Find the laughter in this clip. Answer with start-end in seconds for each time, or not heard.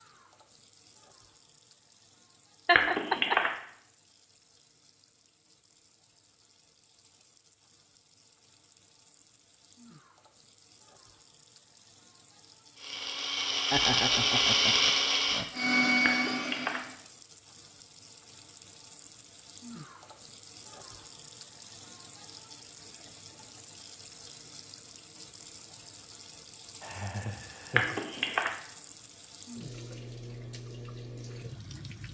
2.6-3.4, 13.7-15.5, 26.8-28.1.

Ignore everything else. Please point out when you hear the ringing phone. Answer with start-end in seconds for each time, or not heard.
2.8-3.5, 16.1-16.8, 27.8-28.5.